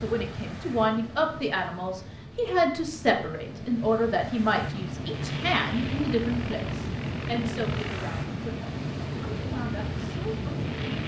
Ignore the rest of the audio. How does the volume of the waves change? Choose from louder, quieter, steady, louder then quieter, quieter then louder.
louder.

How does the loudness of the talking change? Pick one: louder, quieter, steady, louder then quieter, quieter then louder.
quieter.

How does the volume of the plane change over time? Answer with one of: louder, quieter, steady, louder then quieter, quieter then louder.
steady.